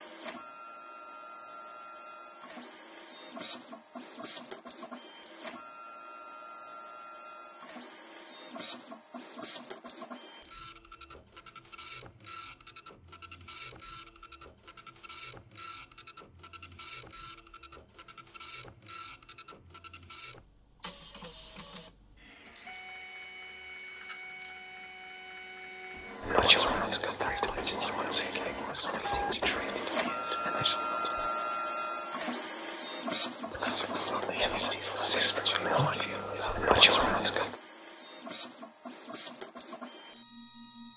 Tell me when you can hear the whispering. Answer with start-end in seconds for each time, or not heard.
26.2-31.4, 33.5-37.5.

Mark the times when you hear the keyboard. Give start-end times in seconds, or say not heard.
not heard.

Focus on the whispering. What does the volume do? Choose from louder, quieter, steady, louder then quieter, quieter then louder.
quieter then louder.